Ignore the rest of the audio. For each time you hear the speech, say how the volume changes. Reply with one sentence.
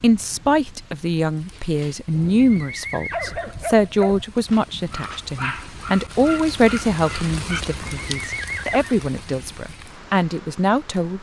You can hear the speech from 0.0 to 11.1 s, at a steady volume.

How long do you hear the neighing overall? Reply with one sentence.
You can hear the neighing for 2 seconds altogether.